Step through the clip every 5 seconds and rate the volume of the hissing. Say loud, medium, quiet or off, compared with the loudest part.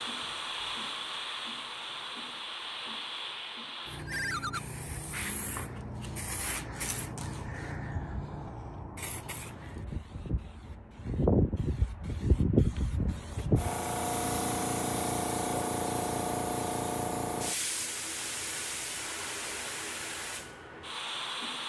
medium, medium, loud, loud, medium.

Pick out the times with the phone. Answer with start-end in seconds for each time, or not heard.
4.0-4.6.